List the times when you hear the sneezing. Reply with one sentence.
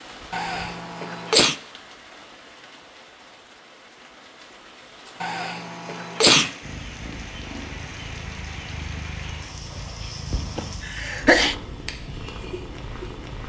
You can hear the sneezing from 0.3 to 1.6 s, from 5.2 to 6.5 s and from 10.6 to 11.6 s.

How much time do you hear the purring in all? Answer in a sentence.
The purring can be heard for 7 seconds in total.